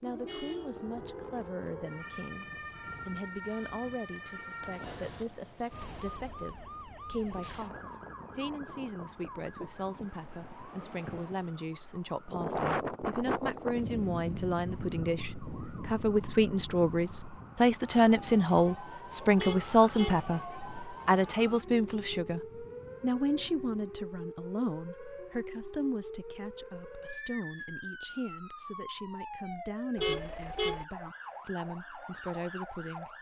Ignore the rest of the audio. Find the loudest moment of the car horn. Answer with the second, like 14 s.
30 s.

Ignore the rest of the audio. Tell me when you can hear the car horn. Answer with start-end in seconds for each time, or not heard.
0.2-0.8, 19.4-20.2, 29.9-30.9.